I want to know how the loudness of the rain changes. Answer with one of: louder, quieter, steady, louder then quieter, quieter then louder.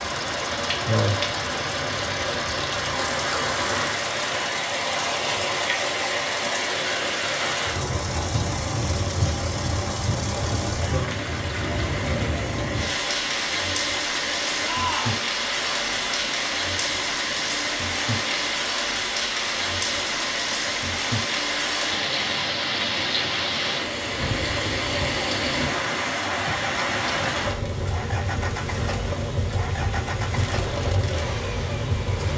steady.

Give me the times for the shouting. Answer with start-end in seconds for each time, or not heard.
14.6-15.2.